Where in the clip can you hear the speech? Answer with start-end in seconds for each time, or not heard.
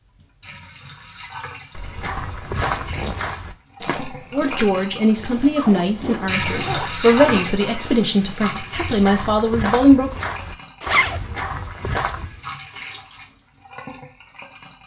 4.3-10.2.